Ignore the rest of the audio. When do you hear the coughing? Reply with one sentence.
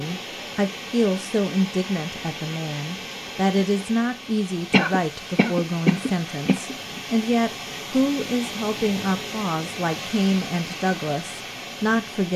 The coughing can be heard from 4.7 to 6.8 s.